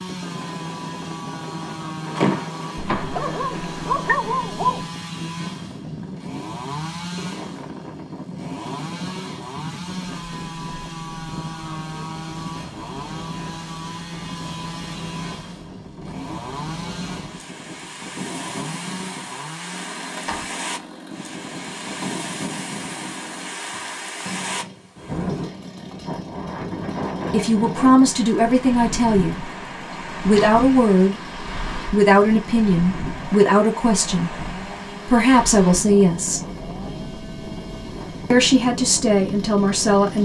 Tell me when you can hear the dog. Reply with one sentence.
You can hear the dog from 3.0 to 4.8 s.